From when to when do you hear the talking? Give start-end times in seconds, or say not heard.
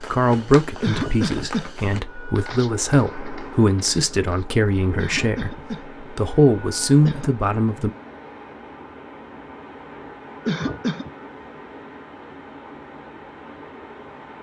0.0-7.9.